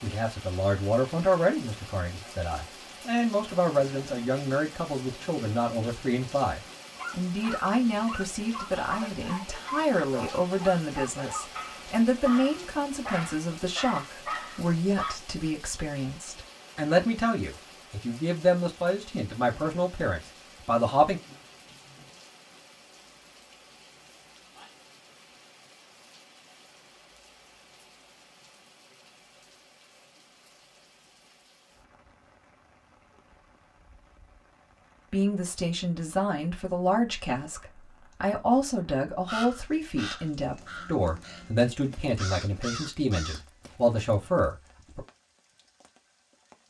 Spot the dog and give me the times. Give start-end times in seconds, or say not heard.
7.0-15.2.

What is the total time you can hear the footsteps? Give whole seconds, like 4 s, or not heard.
not heard.